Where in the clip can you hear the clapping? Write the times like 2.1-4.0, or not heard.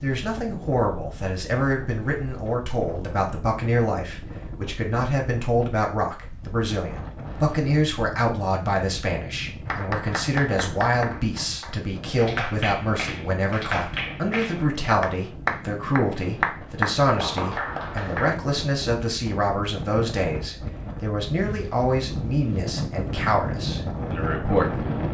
9.7-18.4.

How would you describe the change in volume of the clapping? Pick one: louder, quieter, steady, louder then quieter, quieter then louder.
louder.